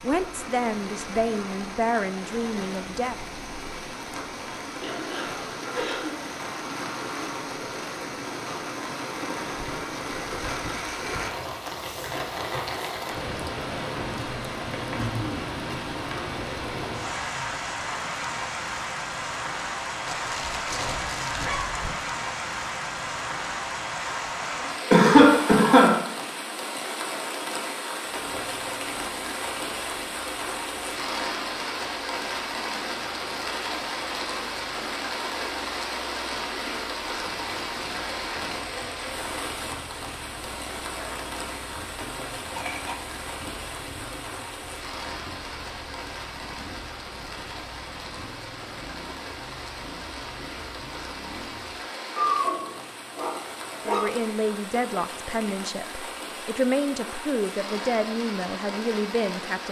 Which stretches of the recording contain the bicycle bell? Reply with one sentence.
You can't hear the bicycle bell here.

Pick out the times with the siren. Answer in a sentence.
You can't hear the siren here.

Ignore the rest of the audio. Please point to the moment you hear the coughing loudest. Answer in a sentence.
The volume of the coughing peaks at 25 seconds.